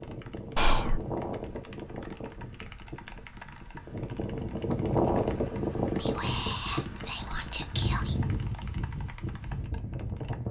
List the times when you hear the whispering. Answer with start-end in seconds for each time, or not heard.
0.6-1.0, 6.0-8.2.